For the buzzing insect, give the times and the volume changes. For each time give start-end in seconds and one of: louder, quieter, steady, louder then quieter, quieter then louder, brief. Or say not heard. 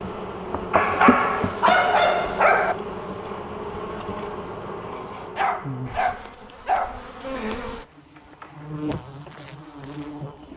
0.0-10.5 quieter.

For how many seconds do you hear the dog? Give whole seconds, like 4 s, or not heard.
4 s.